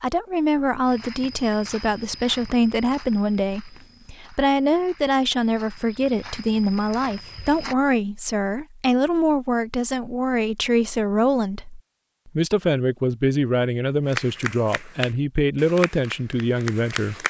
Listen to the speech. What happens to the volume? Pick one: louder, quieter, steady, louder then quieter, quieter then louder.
steady.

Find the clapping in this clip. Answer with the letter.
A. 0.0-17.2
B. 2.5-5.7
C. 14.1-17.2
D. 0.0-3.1
C.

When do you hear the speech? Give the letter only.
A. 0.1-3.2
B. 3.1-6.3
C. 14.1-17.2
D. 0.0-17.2
D.